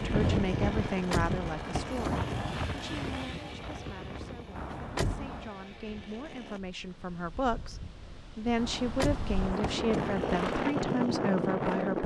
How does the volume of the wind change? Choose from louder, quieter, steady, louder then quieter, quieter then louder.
quieter then louder.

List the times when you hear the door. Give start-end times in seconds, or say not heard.
0.7-2.2, 4.5-5.5, 8.6-10.4.